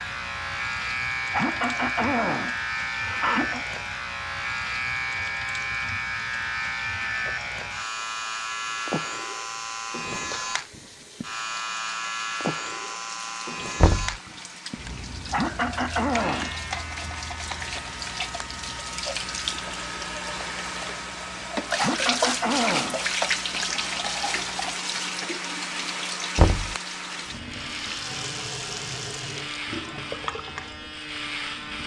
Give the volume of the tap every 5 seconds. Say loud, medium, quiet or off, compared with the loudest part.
quiet, quiet, quiet, medium, loud, medium, medium.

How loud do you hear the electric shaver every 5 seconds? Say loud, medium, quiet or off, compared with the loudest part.
loud, loud, loud, medium, quiet, medium, medium.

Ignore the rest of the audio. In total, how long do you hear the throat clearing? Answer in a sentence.
You can hear the throat clearing for 5 seconds altogether.